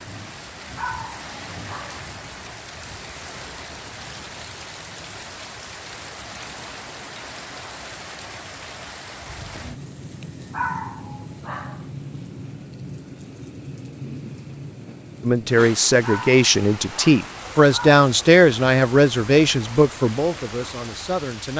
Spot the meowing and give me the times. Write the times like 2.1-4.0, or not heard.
not heard.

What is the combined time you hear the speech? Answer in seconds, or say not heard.
6 s.